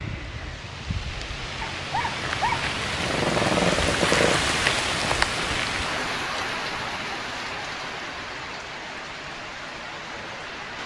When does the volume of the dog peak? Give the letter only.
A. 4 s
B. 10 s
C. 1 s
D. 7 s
A.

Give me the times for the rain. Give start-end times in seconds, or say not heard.
0.0-10.8.